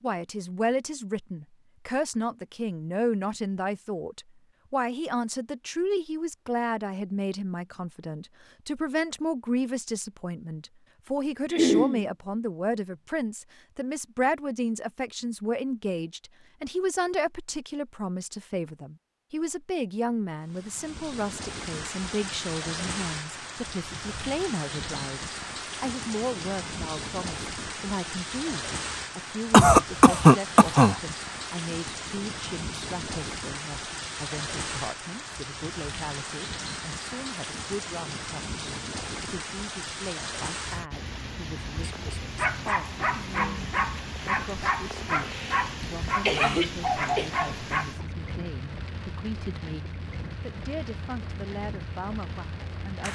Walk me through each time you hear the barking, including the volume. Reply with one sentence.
You can hear the barking from 41.8 to 48.0 s, at a steady volume.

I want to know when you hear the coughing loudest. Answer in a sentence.
The loudest moment of the coughing is at 30 seconds.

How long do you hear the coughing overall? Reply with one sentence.
You can hear the coughing for 4 seconds altogether.